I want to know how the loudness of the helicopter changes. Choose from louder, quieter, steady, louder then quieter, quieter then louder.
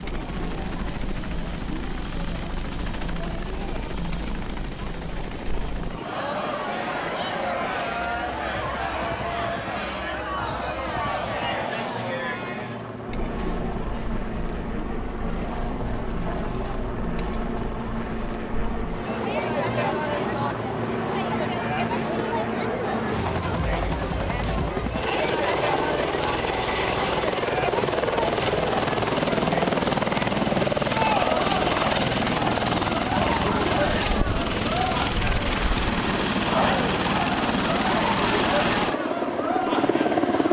louder.